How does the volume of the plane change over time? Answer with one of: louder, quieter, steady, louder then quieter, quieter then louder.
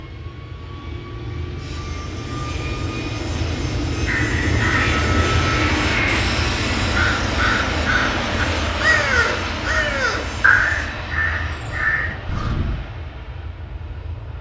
louder then quieter.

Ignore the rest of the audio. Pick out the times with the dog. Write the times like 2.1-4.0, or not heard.
not heard.